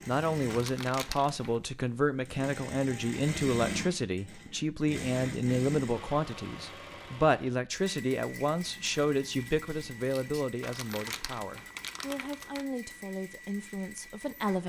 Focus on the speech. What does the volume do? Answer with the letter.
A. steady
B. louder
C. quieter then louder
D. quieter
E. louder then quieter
D.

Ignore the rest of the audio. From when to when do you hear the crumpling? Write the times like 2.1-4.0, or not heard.
0.5-1.6, 10.6-12.7.